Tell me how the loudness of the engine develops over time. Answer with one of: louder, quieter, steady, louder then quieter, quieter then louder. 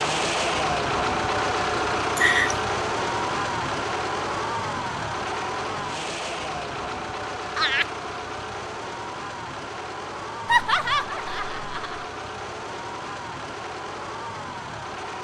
quieter.